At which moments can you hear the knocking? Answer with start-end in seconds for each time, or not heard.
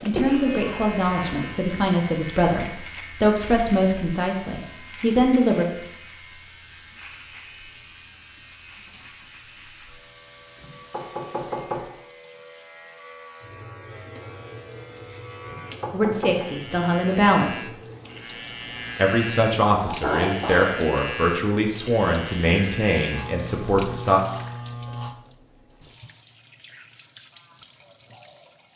10.6-11.8, 15.4-16.4.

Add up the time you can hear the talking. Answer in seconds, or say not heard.
13 s.